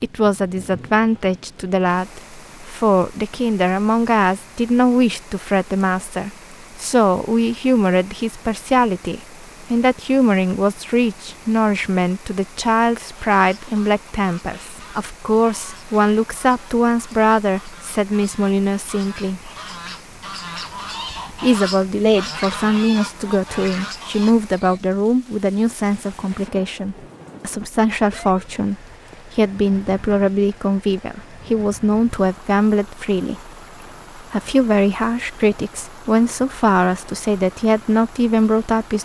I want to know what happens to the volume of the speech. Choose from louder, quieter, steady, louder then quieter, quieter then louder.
steady.